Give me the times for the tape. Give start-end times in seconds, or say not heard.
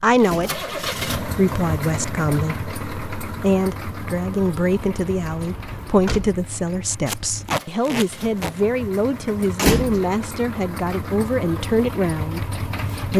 0.1-0.6, 7.0-8.6.